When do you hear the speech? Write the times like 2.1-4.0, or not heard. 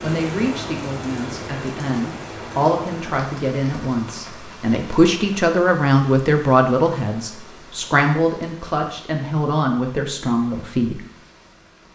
0.0-11.1.